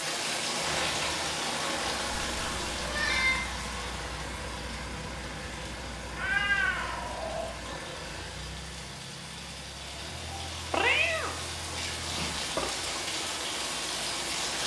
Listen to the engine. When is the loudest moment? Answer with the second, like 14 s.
1 s.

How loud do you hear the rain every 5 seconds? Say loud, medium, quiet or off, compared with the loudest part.
loud, medium, loud.